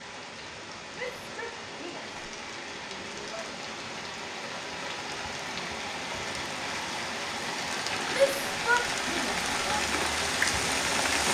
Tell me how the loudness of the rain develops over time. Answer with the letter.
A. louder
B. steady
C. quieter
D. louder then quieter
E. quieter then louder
A.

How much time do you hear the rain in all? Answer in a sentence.
You can hear the rain for 11 seconds altogether.